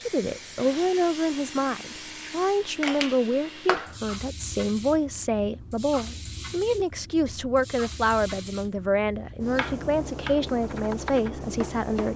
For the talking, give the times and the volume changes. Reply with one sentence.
The talking can be heard from 0.1 to 12.1 s, at a steady volume.